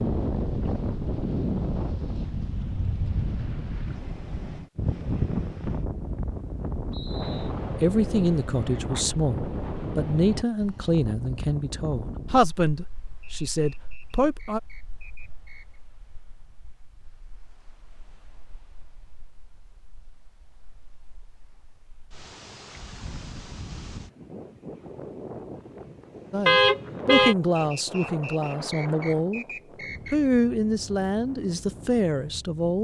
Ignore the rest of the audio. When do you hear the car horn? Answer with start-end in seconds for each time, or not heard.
2.7-3.2, 26.4-27.4.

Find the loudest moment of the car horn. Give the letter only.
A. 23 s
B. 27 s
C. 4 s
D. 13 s
B.